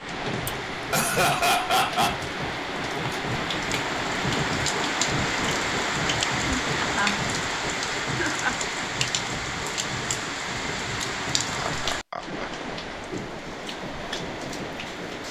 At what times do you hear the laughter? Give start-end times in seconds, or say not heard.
0.7-2.2, 6.0-7.2, 8.0-8.6, 11.6-12.5.